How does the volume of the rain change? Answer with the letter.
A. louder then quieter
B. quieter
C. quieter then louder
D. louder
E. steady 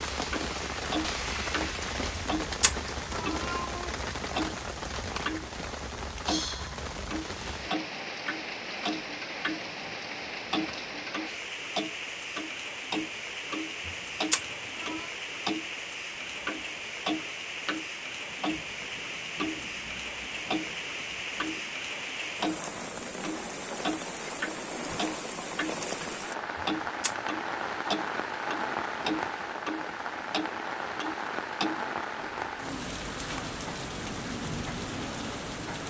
E.